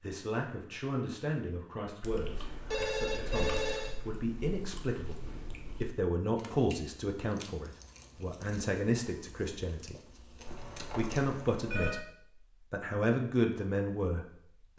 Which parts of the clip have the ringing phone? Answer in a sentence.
You can hear the ringing phone from 2.2 to 4.0 s and from 10.4 to 12.0 s.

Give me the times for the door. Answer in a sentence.
You can't hear the door here.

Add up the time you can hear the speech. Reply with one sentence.
You can hear the speech for 13 seconds altogether.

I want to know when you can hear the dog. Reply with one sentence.
You can't hear the dog here.